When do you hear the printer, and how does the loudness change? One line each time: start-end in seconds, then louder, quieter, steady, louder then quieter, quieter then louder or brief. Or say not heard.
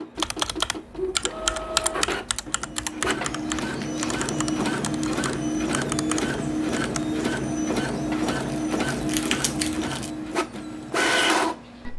0.0-11.9 louder.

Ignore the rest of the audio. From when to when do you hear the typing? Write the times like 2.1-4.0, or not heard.
0.1-7.0.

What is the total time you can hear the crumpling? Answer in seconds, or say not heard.
3 s.